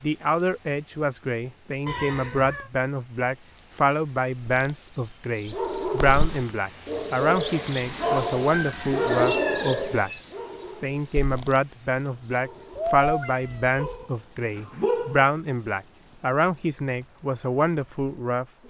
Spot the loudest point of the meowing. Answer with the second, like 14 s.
13 s.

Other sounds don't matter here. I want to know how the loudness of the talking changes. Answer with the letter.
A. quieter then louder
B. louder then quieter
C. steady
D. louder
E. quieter
C.